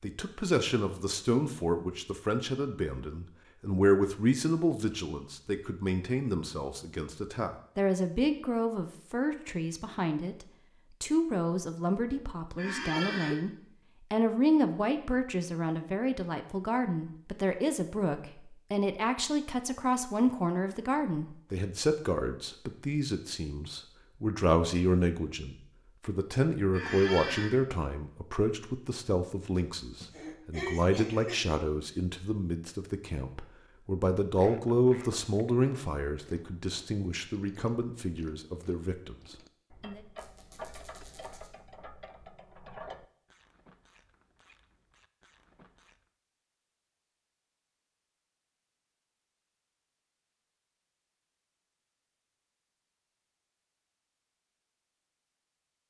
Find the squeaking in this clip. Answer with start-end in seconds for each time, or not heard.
12.6-13.3, 26.7-27.5, 40.1-41.5.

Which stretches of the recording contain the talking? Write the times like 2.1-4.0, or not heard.
0.0-13.5, 14.1-40.0.